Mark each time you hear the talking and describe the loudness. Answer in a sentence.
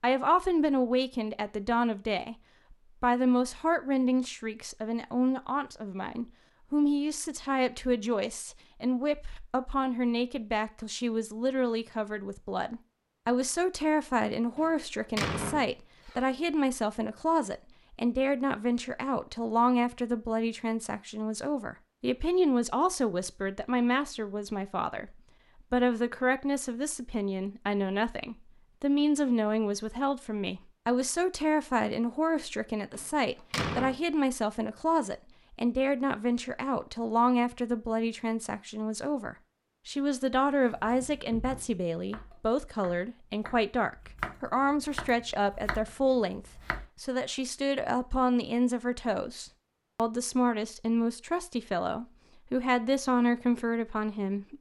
You can hear the talking from 0.0 to 54.5 s, at a steady volume.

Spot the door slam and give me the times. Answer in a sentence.
The door slam can be heard from 14.6 to 16.2 s and from 32.9 to 34.0 s.